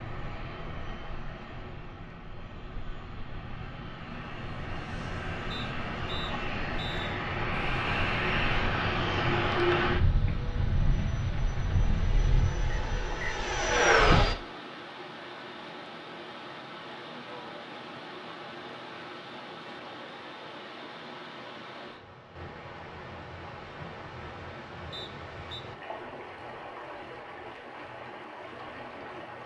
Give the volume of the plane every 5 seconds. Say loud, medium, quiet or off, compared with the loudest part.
quiet, loud, loud, off, off, off.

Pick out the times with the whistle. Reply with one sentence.
The whistle can be heard from 5.5 to 7.2 s, from 12.7 to 13.3 s and from 24.9 to 25.6 s.